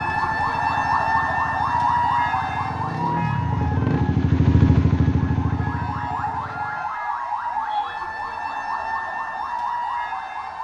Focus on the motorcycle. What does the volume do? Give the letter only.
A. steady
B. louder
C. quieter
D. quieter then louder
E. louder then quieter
E.